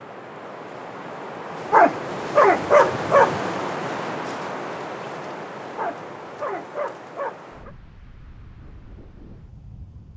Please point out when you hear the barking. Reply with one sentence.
The barking can be heard from 1.7 to 3.4 s and from 5.8 to 7.7 s.